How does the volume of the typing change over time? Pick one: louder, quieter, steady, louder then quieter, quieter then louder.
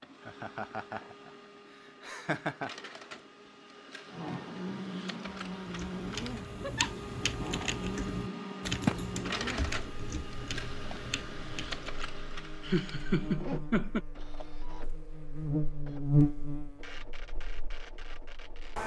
louder then quieter.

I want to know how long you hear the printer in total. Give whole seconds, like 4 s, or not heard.
19 s.